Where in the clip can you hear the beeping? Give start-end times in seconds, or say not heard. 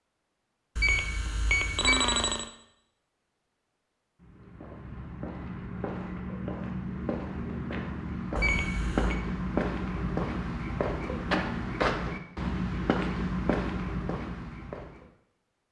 0.8-2.5, 8.3-9.2.